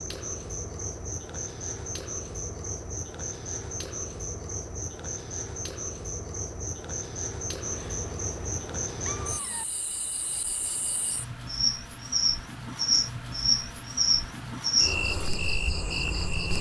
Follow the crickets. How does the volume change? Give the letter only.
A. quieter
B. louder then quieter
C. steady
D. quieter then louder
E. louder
E.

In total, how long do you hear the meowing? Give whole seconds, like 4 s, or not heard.
2 s.